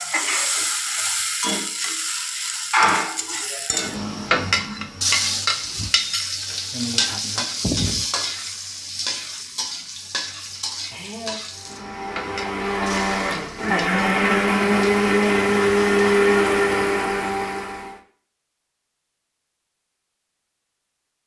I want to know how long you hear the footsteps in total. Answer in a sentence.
The footsteps can't be heard in this clip.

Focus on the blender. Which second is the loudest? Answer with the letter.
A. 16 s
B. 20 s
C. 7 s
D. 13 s
A.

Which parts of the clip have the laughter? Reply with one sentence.
The laughter can be heard from 10.0 to 11.4 s.